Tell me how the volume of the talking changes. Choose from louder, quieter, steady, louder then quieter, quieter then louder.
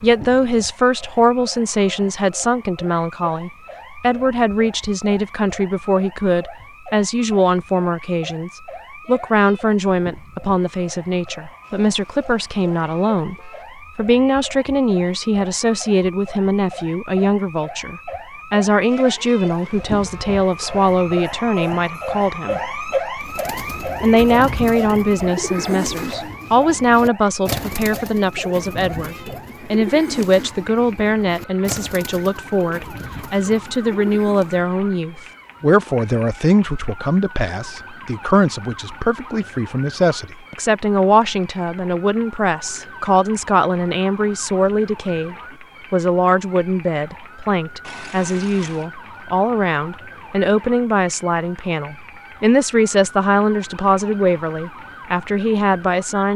steady.